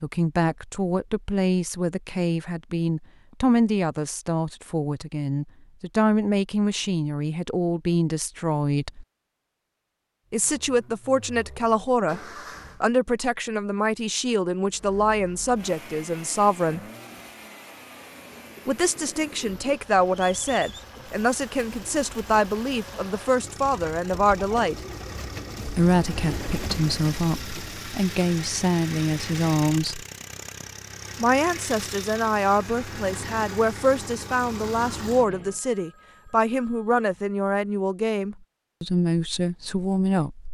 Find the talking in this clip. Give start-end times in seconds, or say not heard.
0.0-9.1, 10.3-12.2, 12.8-16.8, 18.6-24.8, 25.6-30.1, 31.2-40.4.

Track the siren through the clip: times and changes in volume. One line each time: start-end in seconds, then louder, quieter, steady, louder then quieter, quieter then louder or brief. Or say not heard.
not heard.